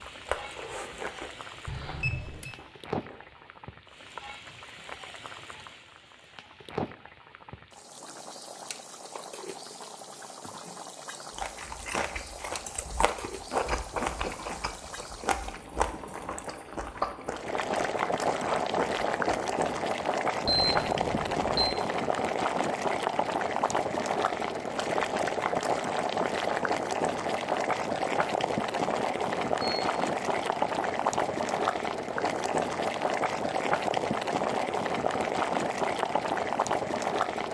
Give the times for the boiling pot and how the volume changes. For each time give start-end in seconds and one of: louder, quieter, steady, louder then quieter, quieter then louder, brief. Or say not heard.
0.0-37.4 louder.